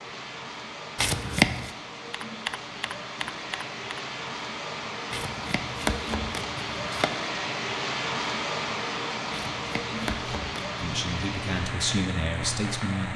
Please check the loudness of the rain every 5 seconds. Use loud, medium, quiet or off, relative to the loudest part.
medium, loud, loud.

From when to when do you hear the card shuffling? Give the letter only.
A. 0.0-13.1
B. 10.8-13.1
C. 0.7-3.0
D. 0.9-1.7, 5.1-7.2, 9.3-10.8
D.